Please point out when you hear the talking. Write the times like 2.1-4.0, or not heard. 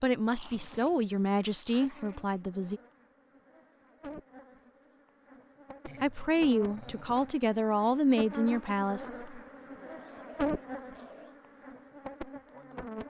0.0-2.8, 6.0-9.3.